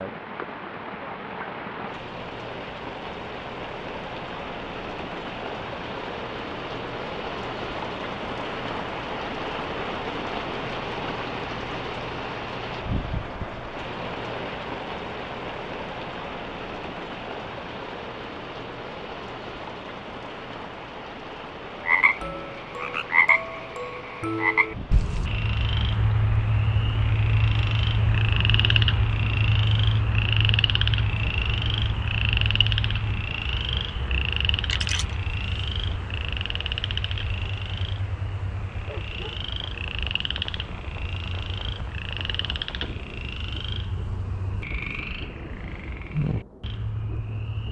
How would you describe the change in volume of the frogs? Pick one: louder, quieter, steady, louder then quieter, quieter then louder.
quieter.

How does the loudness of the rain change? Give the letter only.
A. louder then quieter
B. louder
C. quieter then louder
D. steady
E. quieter
E.